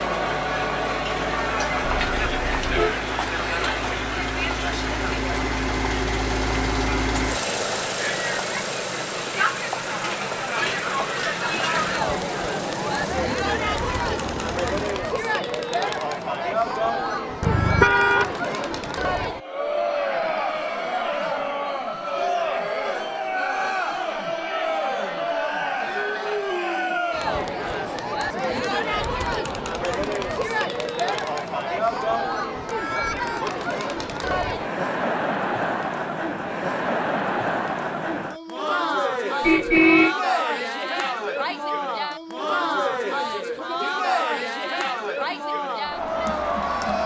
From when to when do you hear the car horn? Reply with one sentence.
You can hear the car horn from 1.8 to 3.0 s, from 17.4 to 18.3 s and from 39.4 to 40.1 s.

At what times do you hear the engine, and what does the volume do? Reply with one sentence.
The engine can be heard from 0.0 to 15.1 s, getting louder then quieter.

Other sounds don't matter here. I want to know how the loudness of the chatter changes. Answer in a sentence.
The volume of the chatter stays about the same.